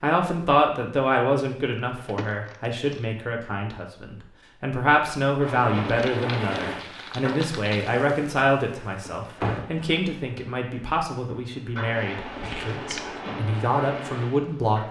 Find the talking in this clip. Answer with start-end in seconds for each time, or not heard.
0.0-14.8.